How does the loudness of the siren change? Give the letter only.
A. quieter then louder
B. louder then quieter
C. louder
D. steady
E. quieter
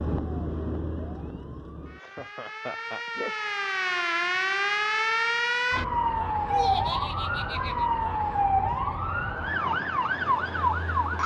C.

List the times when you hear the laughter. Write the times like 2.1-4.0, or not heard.
2.0-3.5, 6.5-7.8.